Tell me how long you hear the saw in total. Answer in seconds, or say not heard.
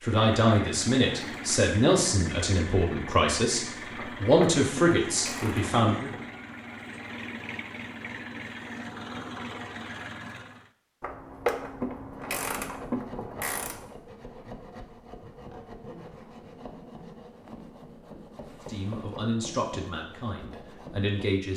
9 s.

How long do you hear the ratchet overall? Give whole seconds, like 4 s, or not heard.
5 s.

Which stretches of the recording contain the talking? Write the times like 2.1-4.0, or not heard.
0.0-6.1, 18.6-21.5.